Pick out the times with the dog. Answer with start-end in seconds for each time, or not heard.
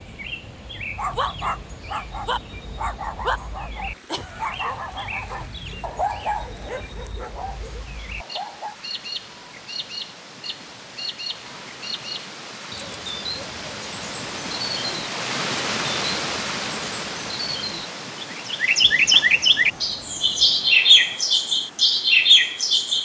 0.9-8.8.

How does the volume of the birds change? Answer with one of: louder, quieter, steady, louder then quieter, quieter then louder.
louder.